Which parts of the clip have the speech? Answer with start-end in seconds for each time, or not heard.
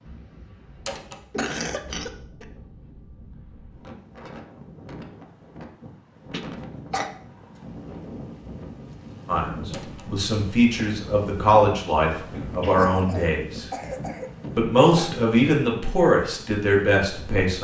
9.2-13.7, 14.6-17.5.